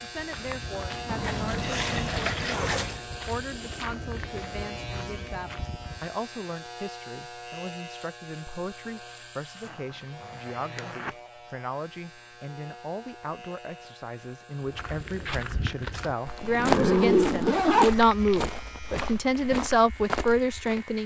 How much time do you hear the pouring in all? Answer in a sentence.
The pouring can be heard for 2 seconds in total.